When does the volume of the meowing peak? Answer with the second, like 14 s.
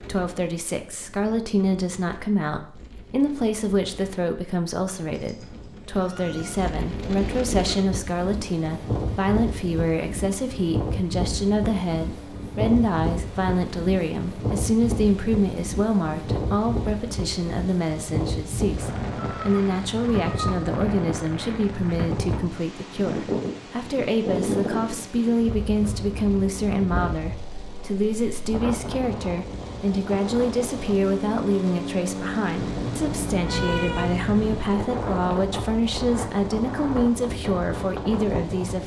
34 s.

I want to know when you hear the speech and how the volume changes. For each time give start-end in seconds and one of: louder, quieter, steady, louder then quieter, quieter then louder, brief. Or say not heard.
0.1-38.8 steady.